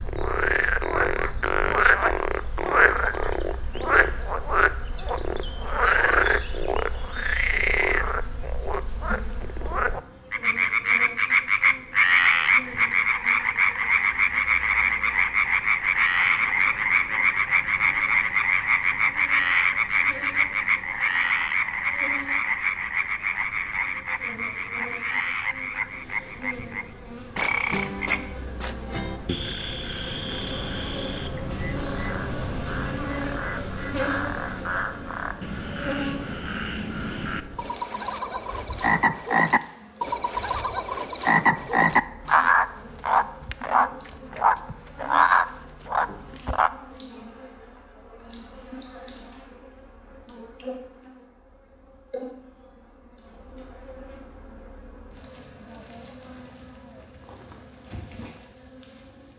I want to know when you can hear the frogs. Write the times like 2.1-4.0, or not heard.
0.0-46.7.